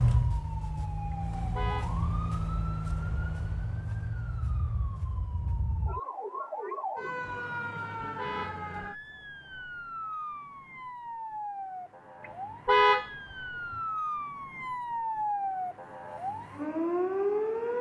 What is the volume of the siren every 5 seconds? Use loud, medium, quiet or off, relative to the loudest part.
loud, medium, medium, loud.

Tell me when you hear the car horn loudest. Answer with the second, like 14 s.
13 s.